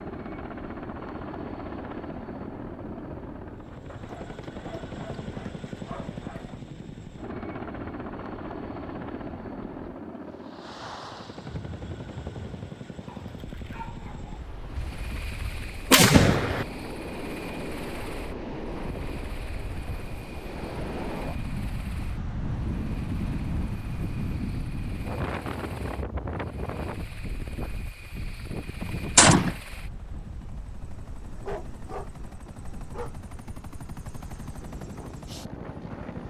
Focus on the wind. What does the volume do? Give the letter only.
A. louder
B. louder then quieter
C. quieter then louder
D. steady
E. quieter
B.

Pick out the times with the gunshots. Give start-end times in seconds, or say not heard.
14.8-16.6, 29.1-29.6.